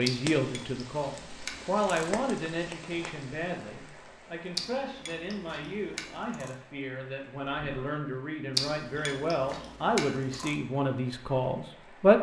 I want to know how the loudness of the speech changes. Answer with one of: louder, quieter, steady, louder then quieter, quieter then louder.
quieter then louder.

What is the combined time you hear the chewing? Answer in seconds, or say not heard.
6 s.